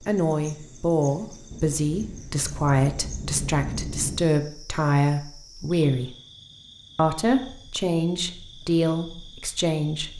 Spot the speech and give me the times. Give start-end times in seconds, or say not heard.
0.1-6.1, 7.0-10.1.